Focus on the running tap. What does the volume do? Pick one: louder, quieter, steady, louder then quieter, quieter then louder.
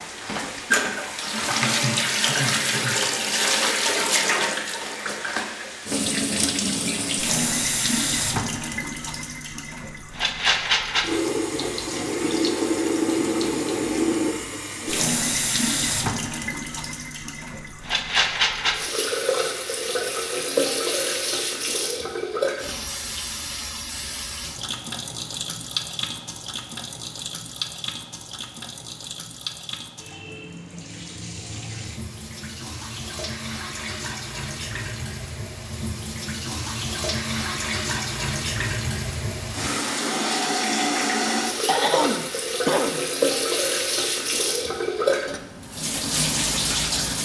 quieter then louder.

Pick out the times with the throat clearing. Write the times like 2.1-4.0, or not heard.
1.4-3.0, 41.5-43.0.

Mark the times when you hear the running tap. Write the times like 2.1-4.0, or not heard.
0.0-47.2.